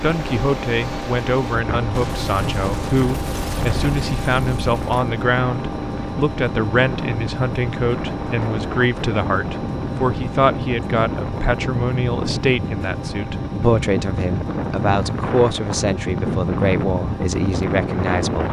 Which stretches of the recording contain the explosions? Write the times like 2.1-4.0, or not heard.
1.9-5.0.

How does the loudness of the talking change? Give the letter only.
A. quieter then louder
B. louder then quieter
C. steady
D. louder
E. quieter
C.